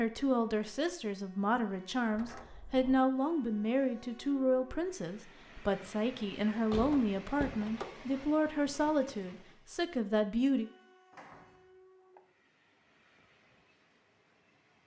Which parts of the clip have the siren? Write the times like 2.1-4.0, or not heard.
not heard.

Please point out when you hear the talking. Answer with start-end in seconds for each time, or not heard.
0.0-10.7.